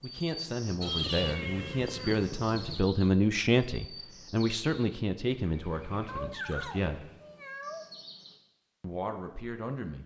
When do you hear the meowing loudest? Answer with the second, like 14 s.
1 s.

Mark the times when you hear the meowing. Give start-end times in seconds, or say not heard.
0.8-2.8, 6.0-7.8.